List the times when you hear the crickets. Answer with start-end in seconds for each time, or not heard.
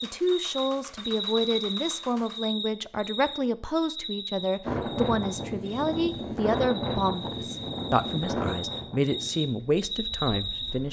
0.0-10.7.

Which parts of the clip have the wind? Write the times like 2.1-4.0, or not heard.
4.6-10.8.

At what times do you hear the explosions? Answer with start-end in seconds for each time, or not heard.
not heard.